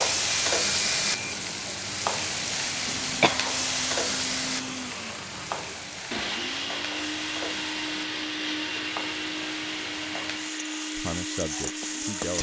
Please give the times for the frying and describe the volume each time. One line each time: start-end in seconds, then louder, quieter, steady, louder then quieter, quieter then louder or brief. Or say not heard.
0.0-12.3 quieter.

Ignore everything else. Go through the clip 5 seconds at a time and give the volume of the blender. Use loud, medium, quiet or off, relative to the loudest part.
medium, loud, loud.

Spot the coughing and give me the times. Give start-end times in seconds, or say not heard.
2.9-3.5.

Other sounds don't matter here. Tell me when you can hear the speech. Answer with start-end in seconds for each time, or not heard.
10.9-12.3.